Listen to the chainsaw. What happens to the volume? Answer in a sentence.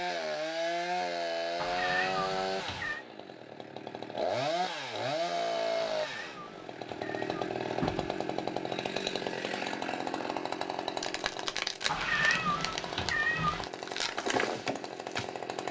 The volume of the chainsaw stays about the same.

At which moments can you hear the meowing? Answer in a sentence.
The meowing can be heard from 1.6 to 3.0 s, from 5.8 to 8.2 s and from 11.8 to 13.7 s.